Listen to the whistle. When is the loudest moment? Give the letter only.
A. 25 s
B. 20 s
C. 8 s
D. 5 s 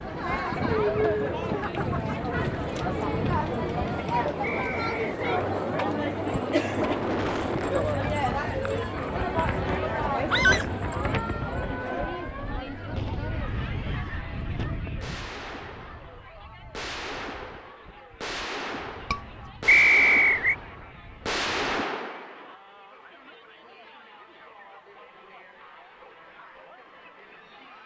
B.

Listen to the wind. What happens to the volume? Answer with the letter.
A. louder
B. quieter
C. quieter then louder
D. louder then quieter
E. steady
B.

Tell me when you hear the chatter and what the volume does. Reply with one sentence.
The chatter can be heard from 0.0 to 27.8 s, getting quieter.